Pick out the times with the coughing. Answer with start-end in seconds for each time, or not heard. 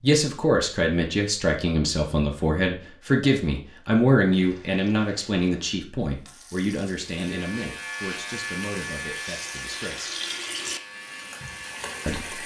not heard.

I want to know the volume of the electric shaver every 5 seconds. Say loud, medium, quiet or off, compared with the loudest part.
off, loud, medium.